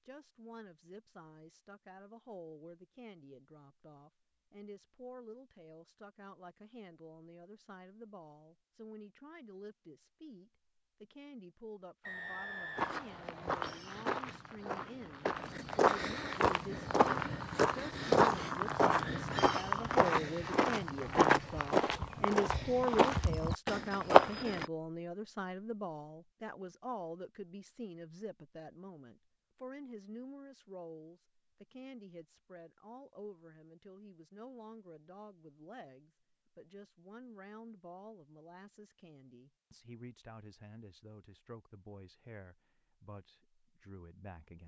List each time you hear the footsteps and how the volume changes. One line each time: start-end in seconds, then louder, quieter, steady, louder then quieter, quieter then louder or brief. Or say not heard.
12.8-24.6 louder.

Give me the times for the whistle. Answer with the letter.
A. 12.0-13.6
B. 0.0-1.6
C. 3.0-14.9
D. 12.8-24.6
A.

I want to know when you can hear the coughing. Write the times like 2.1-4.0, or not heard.
not heard.